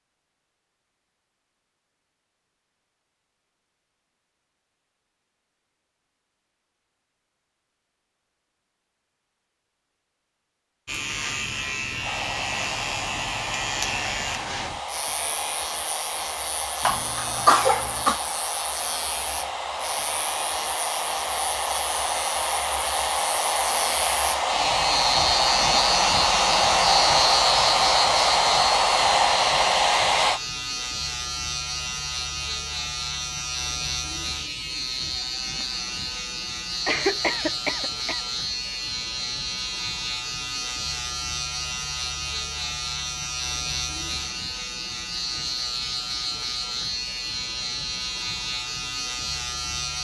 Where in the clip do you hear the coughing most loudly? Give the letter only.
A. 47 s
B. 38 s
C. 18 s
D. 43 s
C.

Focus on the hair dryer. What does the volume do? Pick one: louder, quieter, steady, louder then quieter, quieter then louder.
louder.